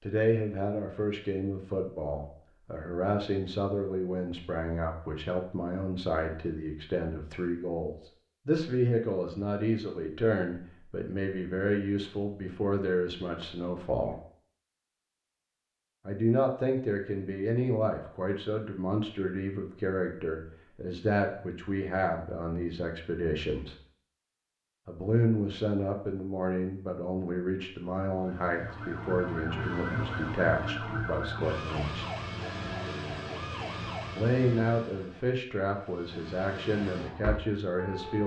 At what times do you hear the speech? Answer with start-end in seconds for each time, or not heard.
0.0-14.2, 16.1-23.8, 24.9-32.0, 34.1-38.2.